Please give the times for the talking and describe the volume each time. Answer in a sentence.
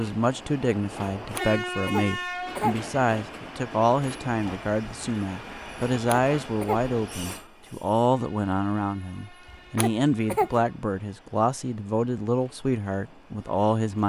The talking can be heard from 0.0 to 14.0 s, at a steady volume.